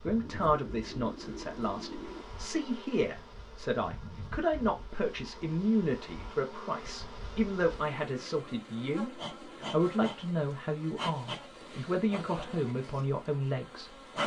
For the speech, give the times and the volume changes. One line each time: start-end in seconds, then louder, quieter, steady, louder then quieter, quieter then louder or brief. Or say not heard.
0.0-13.9 steady.